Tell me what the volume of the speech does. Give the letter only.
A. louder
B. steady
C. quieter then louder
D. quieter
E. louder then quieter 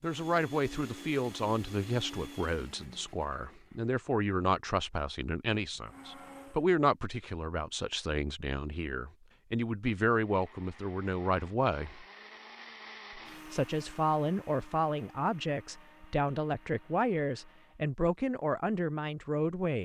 B.